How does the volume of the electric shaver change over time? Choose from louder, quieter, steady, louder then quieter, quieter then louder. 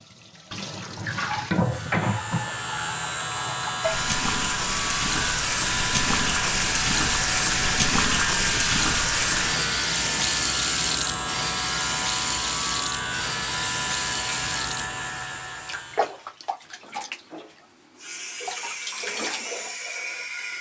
steady.